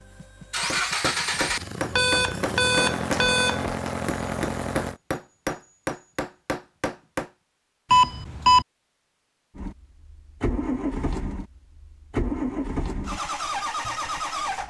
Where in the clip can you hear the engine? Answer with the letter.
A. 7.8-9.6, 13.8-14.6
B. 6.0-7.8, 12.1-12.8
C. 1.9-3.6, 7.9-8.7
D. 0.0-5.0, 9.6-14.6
D.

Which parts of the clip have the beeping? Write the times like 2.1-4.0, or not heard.
1.9-3.6, 7.9-8.7.